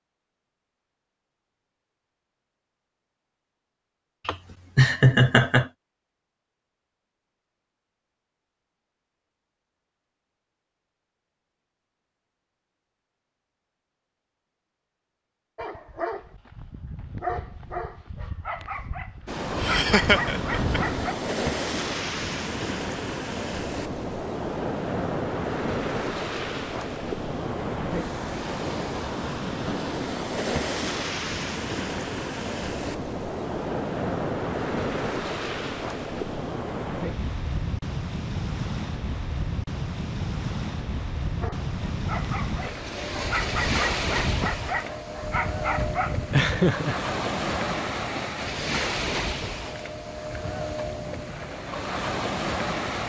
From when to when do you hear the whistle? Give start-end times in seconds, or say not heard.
not heard.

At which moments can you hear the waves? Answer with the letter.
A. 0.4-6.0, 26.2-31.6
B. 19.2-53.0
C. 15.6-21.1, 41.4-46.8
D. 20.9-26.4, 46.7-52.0
B.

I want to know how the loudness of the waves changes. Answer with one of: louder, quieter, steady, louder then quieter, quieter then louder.
steady.